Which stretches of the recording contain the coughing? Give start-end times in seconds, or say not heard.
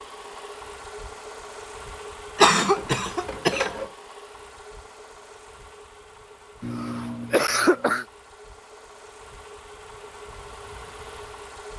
2.4-3.9, 6.6-8.1.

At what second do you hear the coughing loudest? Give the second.
3 s.